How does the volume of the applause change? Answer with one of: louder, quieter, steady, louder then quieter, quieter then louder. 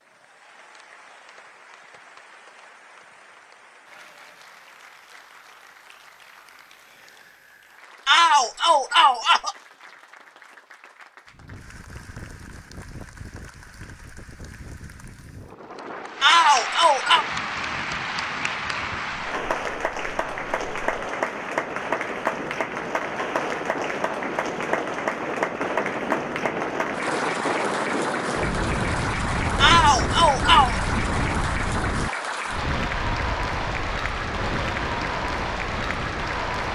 louder.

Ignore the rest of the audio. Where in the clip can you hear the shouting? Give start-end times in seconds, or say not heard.
8.1-9.6, 16.2-17.2, 29.6-30.8.